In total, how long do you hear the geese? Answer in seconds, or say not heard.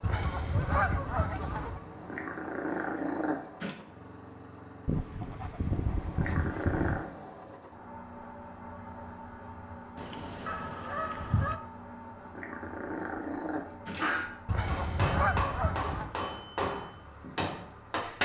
7 s.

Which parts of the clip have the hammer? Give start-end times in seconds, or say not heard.
14.7-18.2.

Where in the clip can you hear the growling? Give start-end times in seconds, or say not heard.
2.0-3.8, 6.2-7.2, 12.3-14.3.